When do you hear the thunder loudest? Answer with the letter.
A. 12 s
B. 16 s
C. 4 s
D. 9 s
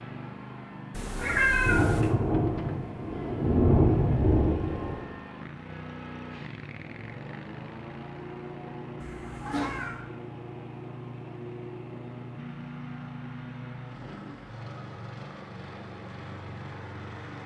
C.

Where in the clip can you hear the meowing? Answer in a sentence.
You can hear the meowing from 0.9 to 2.1 s and from 9.0 to 10.0 s.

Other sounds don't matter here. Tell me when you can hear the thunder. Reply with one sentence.
The thunder can be heard from 1.1 to 5.0 s.